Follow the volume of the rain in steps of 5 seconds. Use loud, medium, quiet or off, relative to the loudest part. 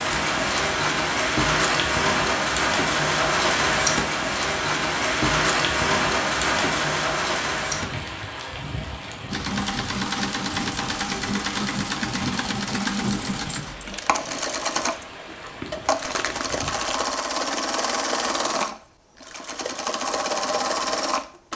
loud, loud, quiet, quiet, off.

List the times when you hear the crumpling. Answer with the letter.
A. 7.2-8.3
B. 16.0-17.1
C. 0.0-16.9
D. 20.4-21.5
B.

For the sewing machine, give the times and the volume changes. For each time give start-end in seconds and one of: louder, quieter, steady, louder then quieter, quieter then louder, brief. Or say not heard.
9.3-21.5 steady.